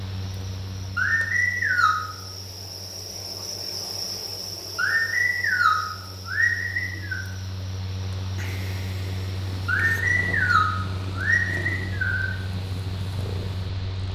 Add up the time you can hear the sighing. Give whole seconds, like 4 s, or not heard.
6 s.